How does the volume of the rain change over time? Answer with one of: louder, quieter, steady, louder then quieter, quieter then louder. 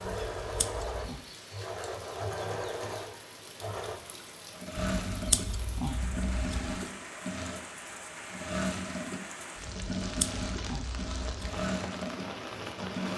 louder.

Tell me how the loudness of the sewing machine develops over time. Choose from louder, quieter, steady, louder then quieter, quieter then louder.
steady.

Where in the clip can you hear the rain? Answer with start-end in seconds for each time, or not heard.
0.0-13.1.